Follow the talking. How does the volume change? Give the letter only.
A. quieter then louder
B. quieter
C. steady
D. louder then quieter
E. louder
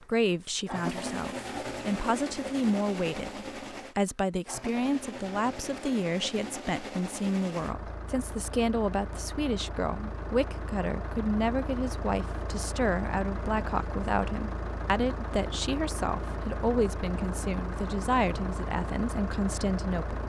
C.